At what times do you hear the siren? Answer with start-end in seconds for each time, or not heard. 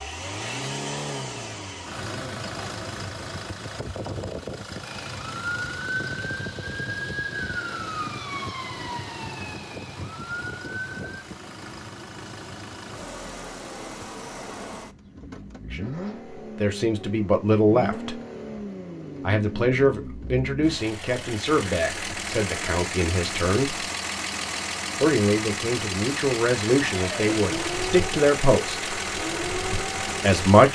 4.8-11.3, 27.1-30.7.